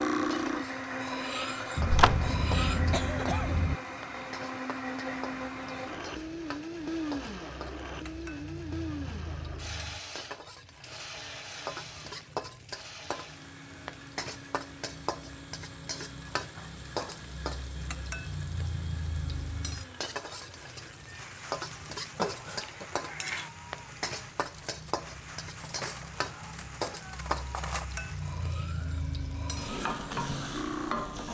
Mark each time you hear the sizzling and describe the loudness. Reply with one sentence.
You can hear the sizzling from 0.2 to 31.3 s, getting louder.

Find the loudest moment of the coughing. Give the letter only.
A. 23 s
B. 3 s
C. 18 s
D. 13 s
B.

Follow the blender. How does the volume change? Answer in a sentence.
The volume of the blender goes down.